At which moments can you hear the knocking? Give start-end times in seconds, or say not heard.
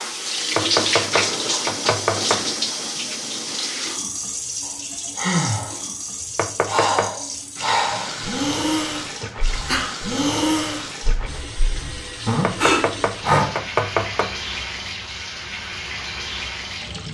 0.6-2.5, 6.3-7.1, 12.4-14.3.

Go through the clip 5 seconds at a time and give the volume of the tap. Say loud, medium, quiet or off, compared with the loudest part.
loud, medium, medium, medium.